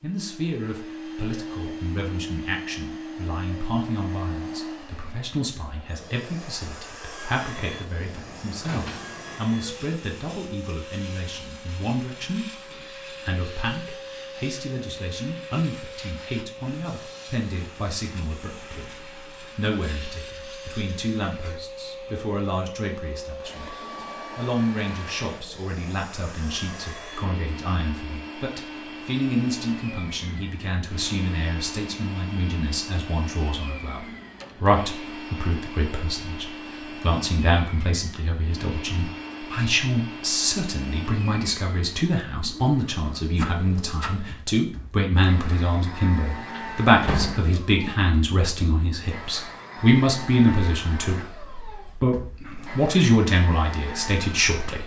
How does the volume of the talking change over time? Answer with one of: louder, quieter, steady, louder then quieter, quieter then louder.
louder.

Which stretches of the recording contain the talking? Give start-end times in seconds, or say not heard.
0.0-54.8.